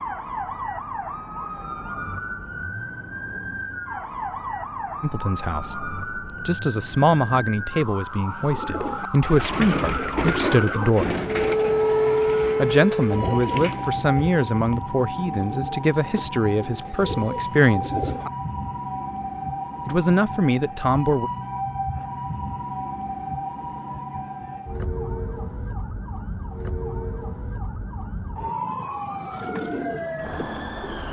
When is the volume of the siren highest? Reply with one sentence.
The loudest moment of the siren is at 12 seconds.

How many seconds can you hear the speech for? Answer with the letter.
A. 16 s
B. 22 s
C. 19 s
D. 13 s
D.